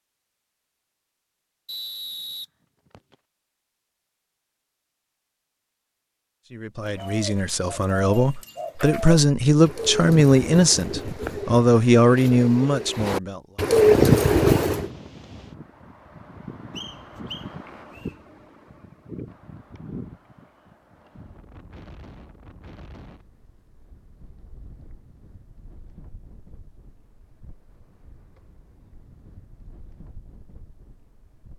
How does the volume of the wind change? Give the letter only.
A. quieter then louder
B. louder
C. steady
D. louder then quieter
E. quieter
E.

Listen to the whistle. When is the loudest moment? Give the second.
2 s.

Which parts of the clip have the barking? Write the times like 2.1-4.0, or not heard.
not heard.